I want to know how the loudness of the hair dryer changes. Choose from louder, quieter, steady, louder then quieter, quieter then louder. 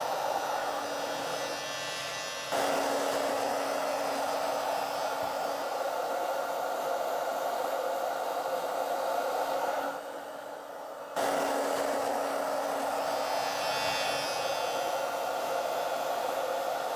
steady.